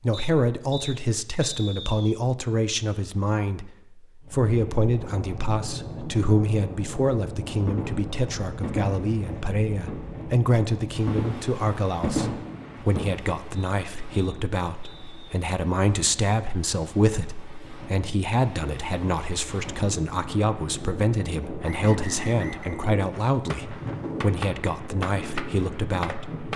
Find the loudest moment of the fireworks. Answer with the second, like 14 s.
12 s.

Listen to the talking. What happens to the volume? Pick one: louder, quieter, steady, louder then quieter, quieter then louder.
steady.